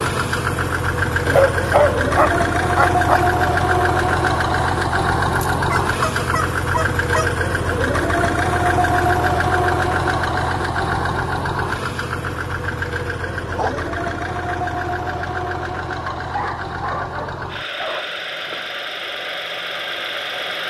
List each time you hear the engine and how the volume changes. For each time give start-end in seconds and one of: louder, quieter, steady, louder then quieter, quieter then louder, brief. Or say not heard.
0.0-20.6 quieter.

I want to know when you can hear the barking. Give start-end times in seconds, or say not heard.
1.2-3.2, 5.3-7.3, 13.4-13.9, 16.1-18.1.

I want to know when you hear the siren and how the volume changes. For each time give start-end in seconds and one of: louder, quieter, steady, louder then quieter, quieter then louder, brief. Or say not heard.
not heard.